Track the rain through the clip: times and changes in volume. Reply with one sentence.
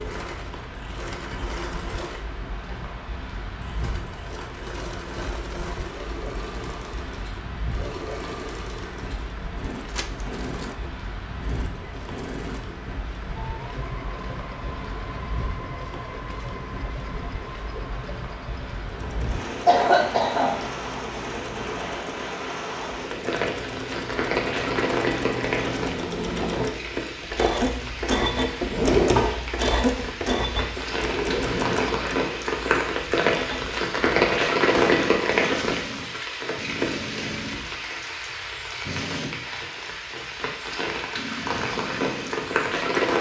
You can hear the rain from 0.0 to 43.1 s, getting louder.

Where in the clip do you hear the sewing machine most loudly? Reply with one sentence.
The loudest moment of the sewing machine is at 29 seconds.